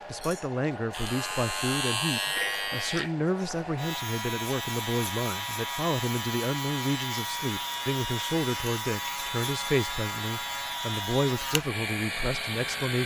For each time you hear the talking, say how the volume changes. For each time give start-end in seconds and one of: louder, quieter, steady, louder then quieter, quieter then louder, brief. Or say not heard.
0.1-13.0 steady.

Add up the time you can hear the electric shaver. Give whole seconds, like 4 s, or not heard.
13 s.